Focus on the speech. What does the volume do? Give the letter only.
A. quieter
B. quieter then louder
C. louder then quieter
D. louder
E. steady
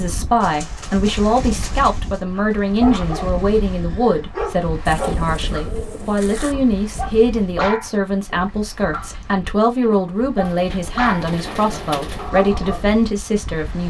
E.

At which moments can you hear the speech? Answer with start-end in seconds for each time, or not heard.
0.0-13.8.